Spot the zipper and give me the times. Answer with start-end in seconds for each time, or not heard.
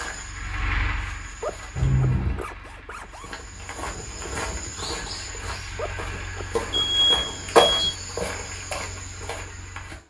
1.2-3.5, 5.6-6.9.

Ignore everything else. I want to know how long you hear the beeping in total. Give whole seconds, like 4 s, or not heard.
2 s.